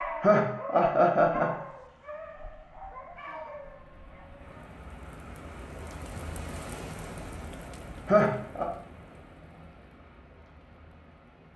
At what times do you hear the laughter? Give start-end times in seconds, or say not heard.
0.2-1.6, 8.1-8.7.